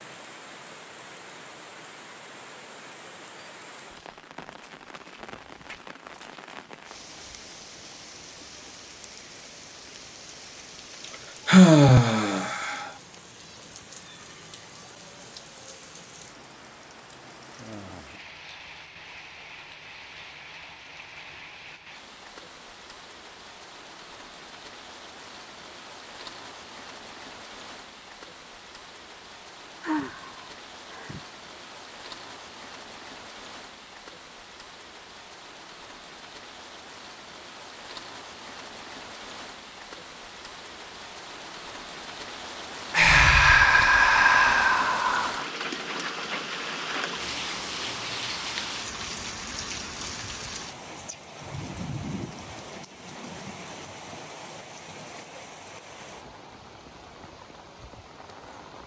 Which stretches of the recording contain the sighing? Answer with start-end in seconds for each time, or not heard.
11.4-12.9, 29.8-31.2, 42.9-45.5.